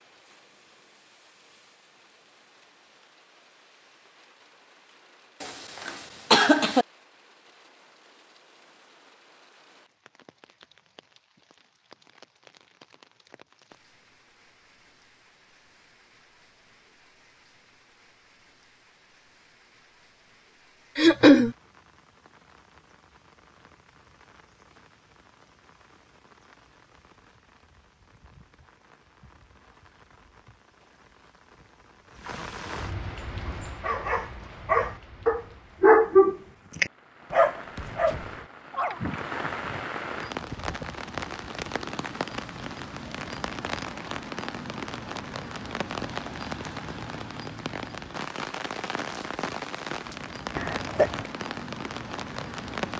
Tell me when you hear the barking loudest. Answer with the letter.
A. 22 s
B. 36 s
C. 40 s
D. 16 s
B.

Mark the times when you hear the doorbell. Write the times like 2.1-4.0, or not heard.
not heard.